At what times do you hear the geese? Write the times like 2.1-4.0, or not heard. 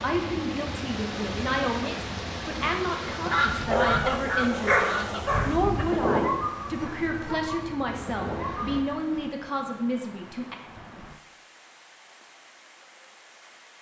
3.2-5.2.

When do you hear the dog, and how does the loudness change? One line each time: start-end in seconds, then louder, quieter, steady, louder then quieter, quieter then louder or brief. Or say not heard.
3.5-8.7 quieter.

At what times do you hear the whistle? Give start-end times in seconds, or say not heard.
not heard.